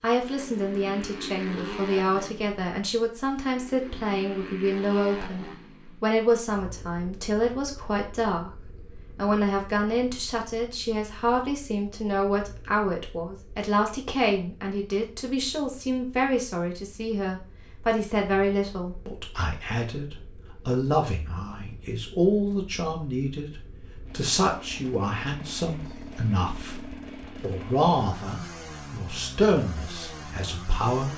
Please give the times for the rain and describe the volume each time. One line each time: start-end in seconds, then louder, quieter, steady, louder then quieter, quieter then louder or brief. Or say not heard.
not heard.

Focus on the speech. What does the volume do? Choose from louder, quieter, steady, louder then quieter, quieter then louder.
steady.